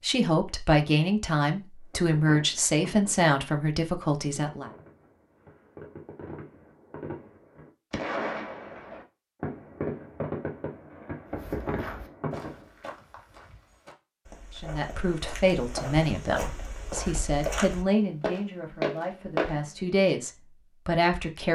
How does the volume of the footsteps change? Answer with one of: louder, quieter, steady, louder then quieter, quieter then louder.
quieter then louder.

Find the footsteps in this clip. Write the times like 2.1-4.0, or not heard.
11.3-19.6.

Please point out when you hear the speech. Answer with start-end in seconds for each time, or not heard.
0.0-4.7, 14.6-21.5.